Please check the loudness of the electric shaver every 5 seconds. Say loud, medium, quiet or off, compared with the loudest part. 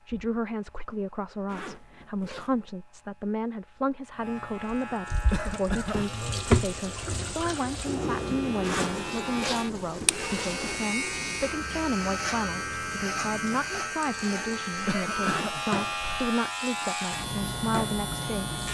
quiet, medium, loud, loud.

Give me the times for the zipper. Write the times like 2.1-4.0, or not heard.
1.4-2.7, 8.6-10.8, 15.2-15.7.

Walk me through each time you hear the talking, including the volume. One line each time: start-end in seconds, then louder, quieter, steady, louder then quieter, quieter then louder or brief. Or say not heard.
0.1-18.6 steady.